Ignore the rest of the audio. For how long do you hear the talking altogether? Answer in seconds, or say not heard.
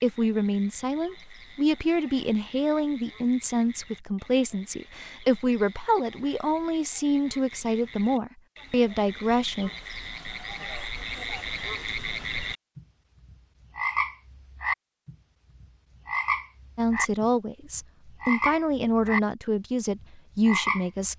14 s.